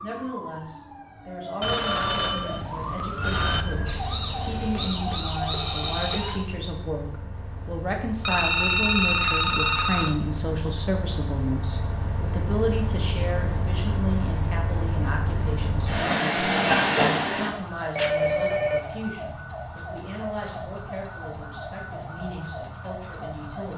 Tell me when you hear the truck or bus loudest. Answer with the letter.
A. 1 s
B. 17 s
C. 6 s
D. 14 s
B.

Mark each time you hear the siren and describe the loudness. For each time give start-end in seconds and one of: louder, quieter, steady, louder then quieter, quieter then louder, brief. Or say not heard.
0.0-6.4 louder
17.5-23.7 steady.